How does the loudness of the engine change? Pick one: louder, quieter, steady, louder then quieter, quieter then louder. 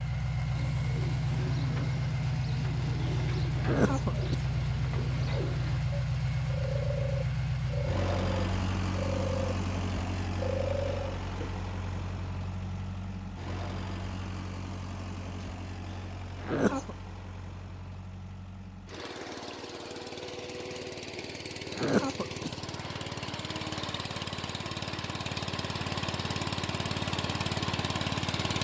quieter then louder.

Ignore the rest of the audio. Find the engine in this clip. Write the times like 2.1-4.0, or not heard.
0.0-28.5.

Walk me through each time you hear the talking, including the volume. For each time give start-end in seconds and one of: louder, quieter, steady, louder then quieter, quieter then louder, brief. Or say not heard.
not heard.